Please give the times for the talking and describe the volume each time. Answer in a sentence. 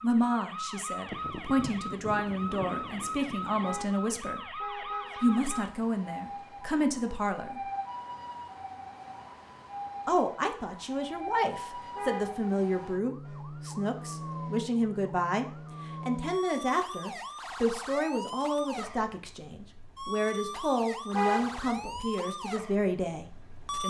The talking can be heard from 0.0 to 4.4 s, getting louder; briefly from 5.2 to 7.6 s; and from 10.1 to 23.8 s, at a steady volume.